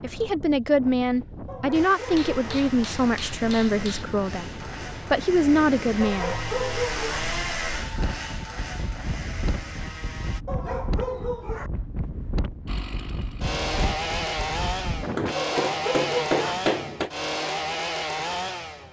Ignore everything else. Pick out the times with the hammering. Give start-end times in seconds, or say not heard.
2.0-4.0, 15.2-17.1.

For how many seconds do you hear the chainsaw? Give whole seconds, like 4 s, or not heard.
15 s.